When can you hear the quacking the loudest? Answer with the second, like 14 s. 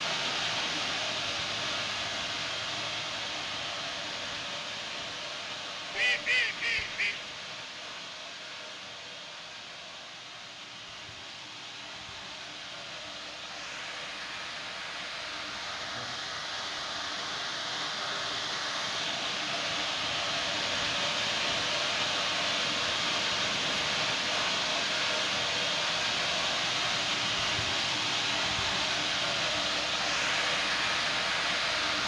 6 s.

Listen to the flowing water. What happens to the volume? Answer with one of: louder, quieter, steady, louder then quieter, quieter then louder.
quieter then louder.